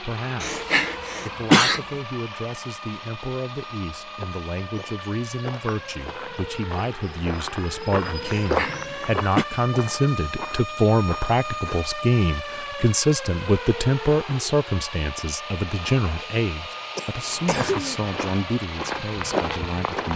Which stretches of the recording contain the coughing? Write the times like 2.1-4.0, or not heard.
0.4-1.9, 8.2-9.4, 16.9-18.0.